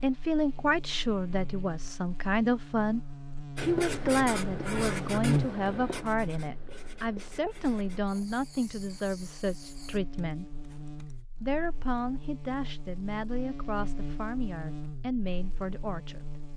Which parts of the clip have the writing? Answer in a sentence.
You can hear the writing from 3.5 to 11.2 s.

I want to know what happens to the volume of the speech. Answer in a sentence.
The loudness of the speech goes down.